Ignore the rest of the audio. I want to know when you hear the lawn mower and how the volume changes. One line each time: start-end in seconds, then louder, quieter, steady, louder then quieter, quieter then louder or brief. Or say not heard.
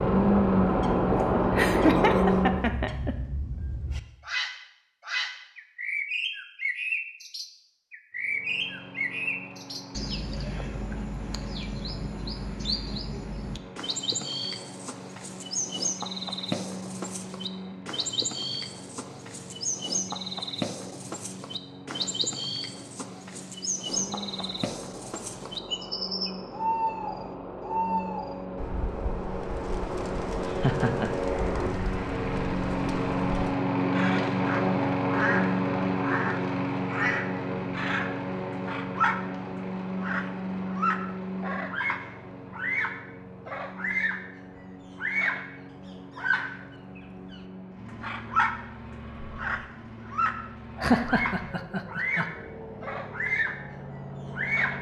0.0-2.7 brief
8.2-54.7 louder then quieter.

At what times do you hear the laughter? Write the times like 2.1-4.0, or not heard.
1.1-3.1, 30.4-31.1, 50.8-52.2.